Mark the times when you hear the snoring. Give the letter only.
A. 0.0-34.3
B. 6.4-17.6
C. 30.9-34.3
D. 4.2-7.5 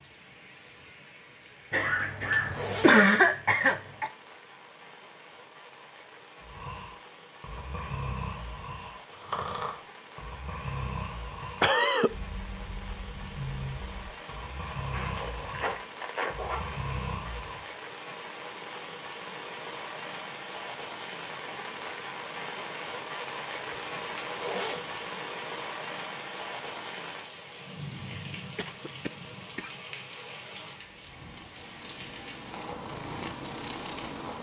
B.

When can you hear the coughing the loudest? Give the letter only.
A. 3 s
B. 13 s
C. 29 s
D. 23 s
A.